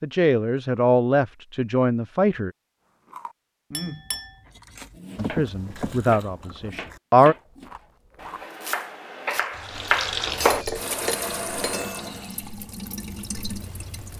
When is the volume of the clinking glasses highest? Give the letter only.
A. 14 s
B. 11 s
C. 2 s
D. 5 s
B.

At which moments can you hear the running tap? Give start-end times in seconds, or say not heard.
9.3-14.1.